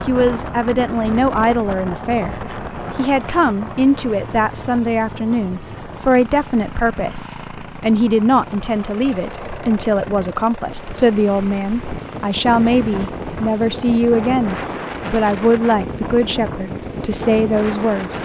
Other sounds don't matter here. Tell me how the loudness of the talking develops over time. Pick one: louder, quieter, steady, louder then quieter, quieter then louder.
steady.